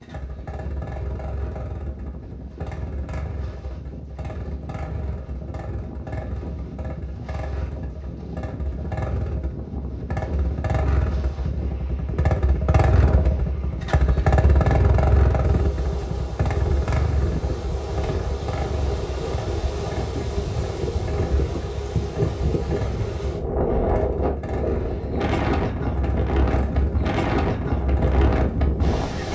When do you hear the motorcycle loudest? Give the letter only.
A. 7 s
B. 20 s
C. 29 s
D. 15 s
D.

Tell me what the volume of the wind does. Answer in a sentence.
The loudness of the wind goes up.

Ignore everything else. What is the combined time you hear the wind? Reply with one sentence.
You can hear the wind for 29 seconds altogether.